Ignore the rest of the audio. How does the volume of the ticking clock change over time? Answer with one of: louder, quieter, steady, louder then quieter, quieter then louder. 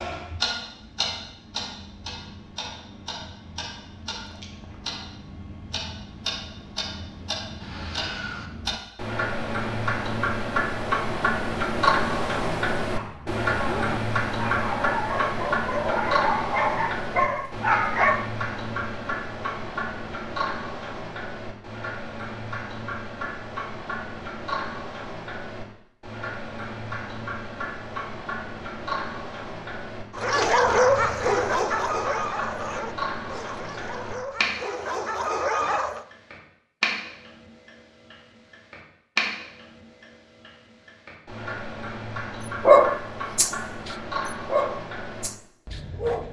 louder then quieter.